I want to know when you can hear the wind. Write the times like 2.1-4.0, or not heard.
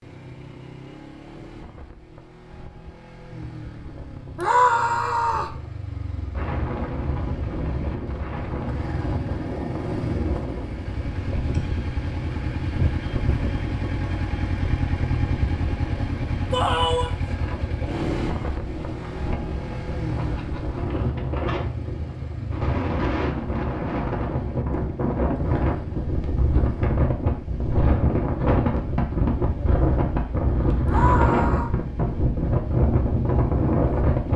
6.3-34.3.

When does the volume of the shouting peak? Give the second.
5 s.